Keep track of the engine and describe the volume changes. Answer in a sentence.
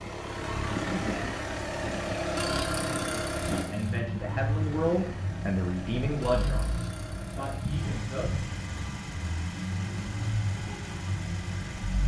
The volume of the engine goes down.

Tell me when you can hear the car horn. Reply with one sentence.
The car horn can't be heard in this clip.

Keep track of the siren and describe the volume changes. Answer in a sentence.
The volume of the siren stays about the same.